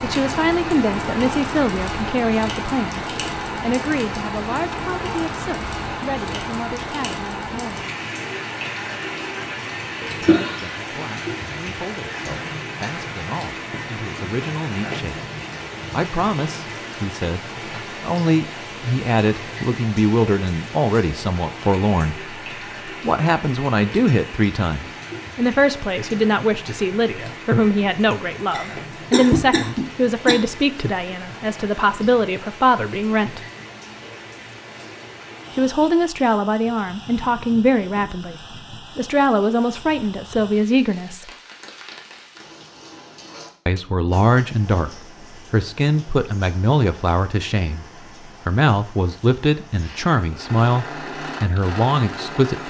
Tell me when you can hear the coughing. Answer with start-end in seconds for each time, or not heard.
10.2-10.7, 28.1-30.4.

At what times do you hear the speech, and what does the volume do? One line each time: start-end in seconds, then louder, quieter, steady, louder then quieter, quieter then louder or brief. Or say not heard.
0.0-7.9 quieter
10.2-15.2 louder
15.9-33.4 steady
35.5-41.3 quieter then louder
43.6-52.6 steady.